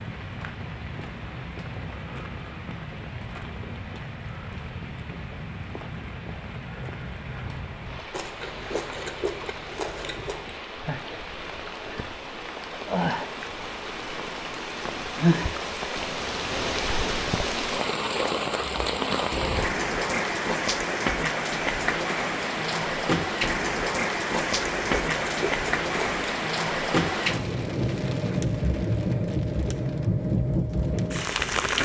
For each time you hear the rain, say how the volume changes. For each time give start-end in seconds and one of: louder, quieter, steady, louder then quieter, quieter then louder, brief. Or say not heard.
0.0-31.8 louder.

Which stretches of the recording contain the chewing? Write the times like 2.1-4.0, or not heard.
8.1-10.6, 24.5-26.2.